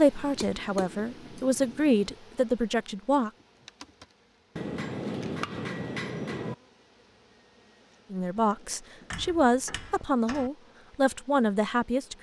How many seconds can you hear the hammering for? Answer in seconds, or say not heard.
6 s.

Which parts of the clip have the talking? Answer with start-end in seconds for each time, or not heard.
0.0-3.3, 8.1-12.1.